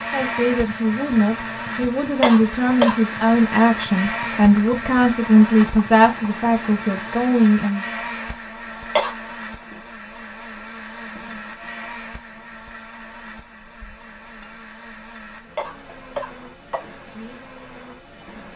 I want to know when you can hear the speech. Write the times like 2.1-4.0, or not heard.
0.1-7.8.